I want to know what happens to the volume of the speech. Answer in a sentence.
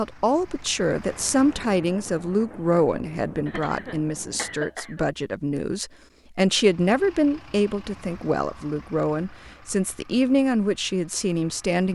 The volume of the speech stays about the same.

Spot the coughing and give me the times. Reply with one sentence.
The coughing can be heard from 3.5 to 5.0 s.